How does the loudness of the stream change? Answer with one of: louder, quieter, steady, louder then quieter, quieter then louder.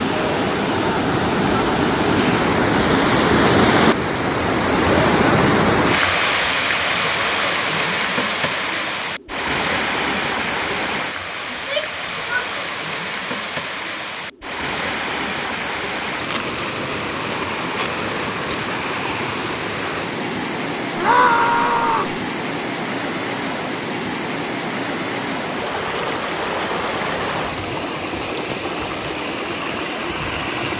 quieter.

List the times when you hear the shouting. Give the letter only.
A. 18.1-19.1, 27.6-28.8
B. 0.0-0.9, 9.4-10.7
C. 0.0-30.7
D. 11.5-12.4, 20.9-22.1
D.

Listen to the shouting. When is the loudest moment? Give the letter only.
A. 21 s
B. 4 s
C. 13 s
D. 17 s
A.